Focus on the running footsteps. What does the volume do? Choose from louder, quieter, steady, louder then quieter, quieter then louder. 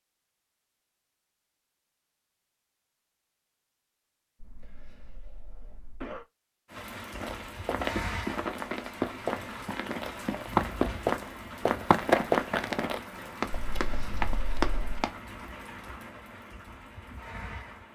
louder then quieter.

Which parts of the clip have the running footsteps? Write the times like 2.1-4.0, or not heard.
7.2-15.2.